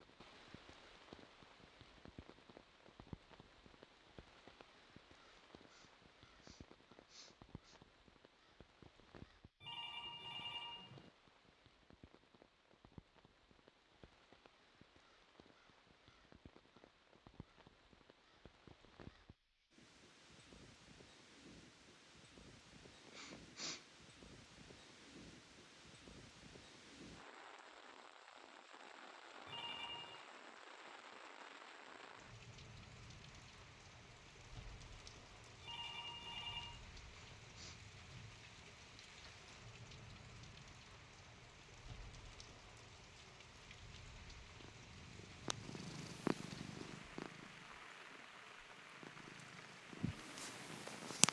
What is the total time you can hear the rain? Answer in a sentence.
You can hear the rain for 51 seconds altogether.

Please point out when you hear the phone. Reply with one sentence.
The phone can be heard from 9.6 to 11.1 s, from 29.4 to 30.2 s and from 35.6 to 36.8 s.